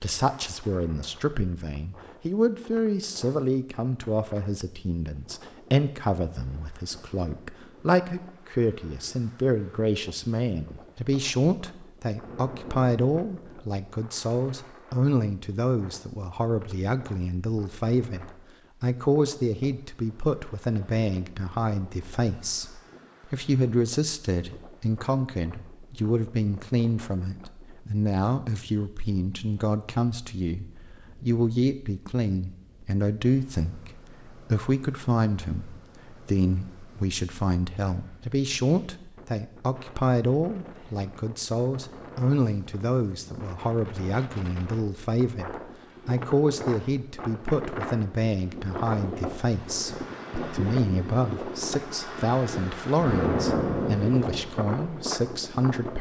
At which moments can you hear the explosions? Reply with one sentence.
You can hear the explosions from 12.2 to 13.7 s and from 53.0 to 54.5 s.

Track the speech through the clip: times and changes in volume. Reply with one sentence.
The speech can be heard from 0.0 to 55.9 s, at a steady volume.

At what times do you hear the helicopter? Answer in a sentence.
The helicopter can't be heard in this clip.